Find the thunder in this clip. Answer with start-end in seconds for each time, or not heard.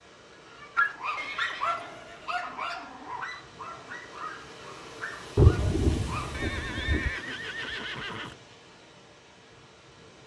5.3-7.1.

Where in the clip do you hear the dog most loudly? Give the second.
1 s.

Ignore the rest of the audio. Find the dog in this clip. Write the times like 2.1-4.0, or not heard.
0.5-6.4.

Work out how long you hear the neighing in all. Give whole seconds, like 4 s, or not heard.
3 s.